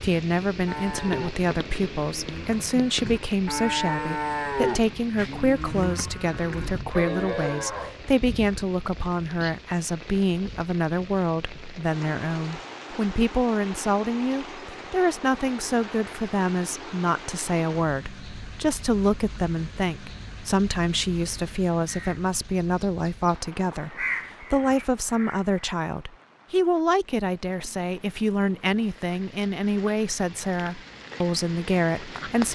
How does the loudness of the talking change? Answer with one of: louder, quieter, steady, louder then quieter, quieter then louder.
steady.